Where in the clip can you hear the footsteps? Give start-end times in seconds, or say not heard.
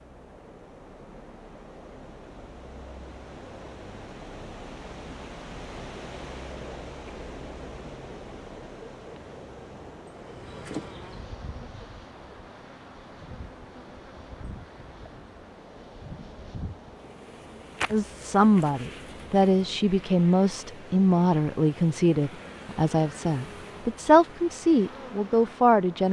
not heard.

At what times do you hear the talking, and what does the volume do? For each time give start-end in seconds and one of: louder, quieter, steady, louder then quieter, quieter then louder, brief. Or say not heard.
17.9-26.0 steady.